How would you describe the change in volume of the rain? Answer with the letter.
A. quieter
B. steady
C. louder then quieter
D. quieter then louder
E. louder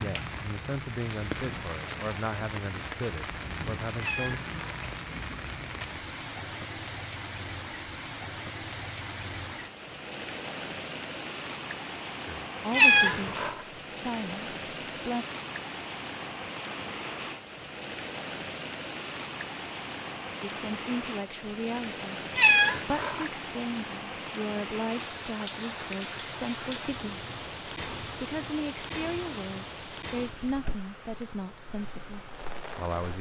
B.